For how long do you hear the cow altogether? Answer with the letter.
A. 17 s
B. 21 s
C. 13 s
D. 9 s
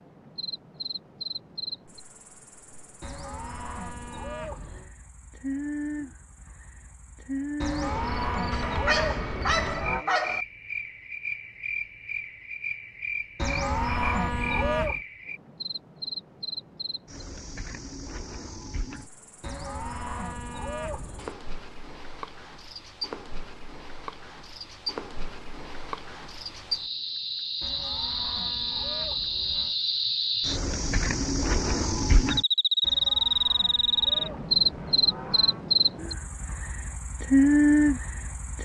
C.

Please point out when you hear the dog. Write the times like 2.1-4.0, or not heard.
8.5-10.4.